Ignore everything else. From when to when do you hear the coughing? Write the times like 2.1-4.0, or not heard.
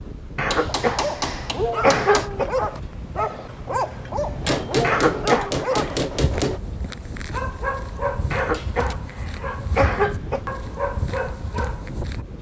0.3-2.5, 4.8-5.7, 8.3-10.4.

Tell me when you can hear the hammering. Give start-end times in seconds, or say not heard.
0.5-2.3, 4.4-6.6, 8.5-8.9.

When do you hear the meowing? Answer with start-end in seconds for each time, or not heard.
not heard.